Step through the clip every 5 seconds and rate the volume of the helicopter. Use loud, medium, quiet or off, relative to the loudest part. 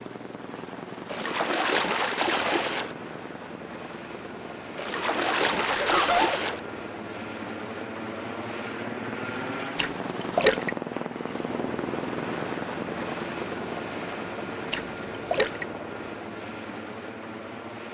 medium, loud, loud, medium.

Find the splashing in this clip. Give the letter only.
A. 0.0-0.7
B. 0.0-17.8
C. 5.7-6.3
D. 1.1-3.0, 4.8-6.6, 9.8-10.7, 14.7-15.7
D.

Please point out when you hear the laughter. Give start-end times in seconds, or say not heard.
5.7-6.3.